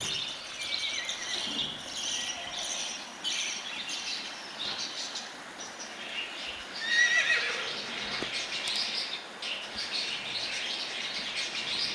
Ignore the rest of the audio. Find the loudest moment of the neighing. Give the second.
7 s.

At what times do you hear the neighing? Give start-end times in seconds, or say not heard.
0.3-3.0, 6.8-8.8.